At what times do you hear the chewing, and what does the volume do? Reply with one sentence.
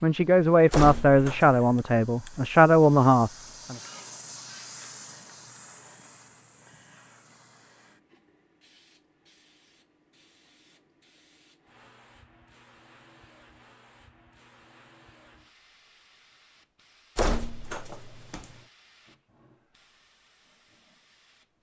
You can't hear the chewing here.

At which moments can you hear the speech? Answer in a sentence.
You can hear the speech from 0.0 to 3.8 s.